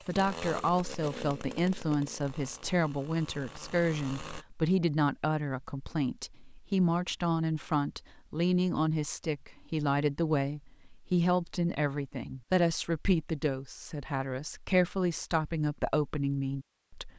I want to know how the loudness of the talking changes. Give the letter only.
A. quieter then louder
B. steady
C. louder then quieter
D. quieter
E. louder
B.